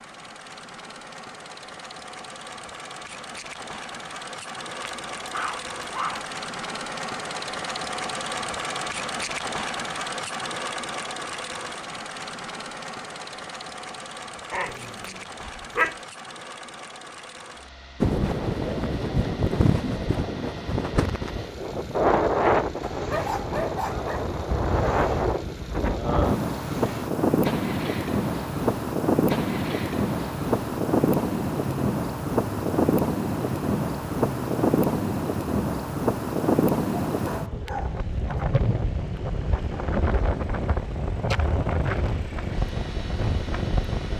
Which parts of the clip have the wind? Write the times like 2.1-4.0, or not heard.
18.0-44.1.